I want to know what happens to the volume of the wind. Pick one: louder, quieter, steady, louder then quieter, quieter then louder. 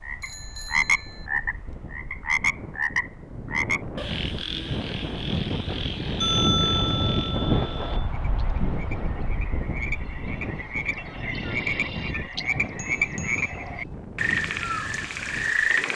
louder then quieter.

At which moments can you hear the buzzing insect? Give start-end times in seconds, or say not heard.
not heard.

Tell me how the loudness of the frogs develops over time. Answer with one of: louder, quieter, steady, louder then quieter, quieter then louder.
quieter then louder.